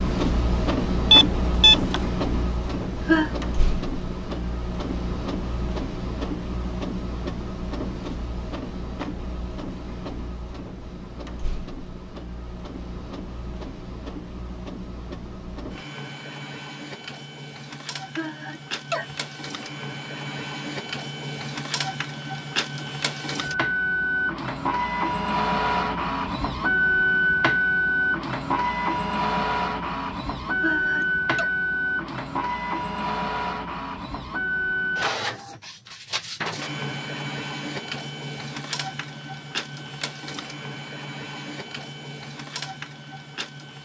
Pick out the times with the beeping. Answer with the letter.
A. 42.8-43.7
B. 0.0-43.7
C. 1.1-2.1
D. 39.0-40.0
C.